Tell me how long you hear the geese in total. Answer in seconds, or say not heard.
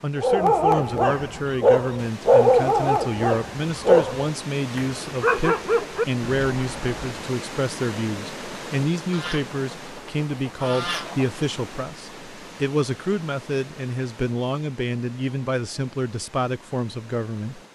2 s.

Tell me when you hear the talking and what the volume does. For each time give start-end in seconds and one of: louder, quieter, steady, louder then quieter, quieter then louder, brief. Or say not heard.
0.0-17.6 steady.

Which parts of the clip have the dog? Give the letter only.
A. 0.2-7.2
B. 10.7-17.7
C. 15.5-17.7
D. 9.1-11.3
A.